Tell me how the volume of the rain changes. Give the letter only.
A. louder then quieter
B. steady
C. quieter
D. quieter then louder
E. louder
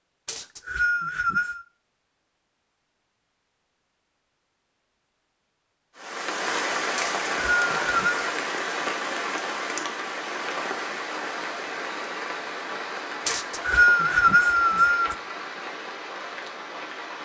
C.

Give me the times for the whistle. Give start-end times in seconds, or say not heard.
0.2-1.6, 7.0-8.2, 13.2-15.2.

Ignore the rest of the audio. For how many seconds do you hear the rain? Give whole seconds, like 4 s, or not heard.
11 s.